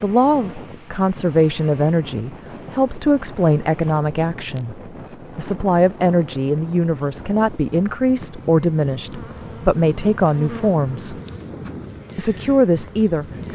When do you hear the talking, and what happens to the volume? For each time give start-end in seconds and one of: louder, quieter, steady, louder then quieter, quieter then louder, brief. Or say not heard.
0.0-11.2 steady
12.2-13.2 brief.